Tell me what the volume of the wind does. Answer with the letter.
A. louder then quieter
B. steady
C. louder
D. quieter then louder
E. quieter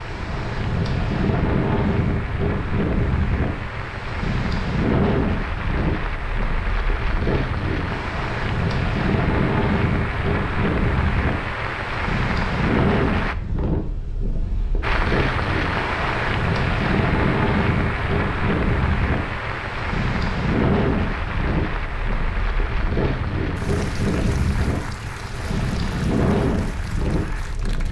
B.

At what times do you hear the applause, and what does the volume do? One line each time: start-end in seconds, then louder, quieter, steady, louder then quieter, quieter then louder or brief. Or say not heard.
0.0-13.3 louder
14.8-27.8 quieter.